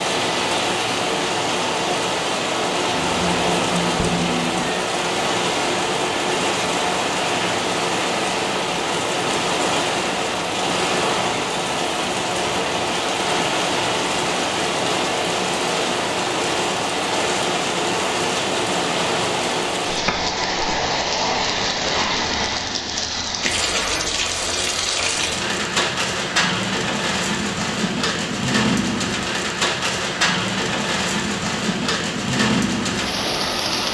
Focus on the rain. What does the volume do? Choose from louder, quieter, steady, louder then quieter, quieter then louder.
steady.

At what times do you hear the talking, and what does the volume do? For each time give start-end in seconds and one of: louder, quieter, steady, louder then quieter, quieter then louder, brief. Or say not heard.
not heard.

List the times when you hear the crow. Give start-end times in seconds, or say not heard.
not heard.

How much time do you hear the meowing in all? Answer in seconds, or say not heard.
2 s.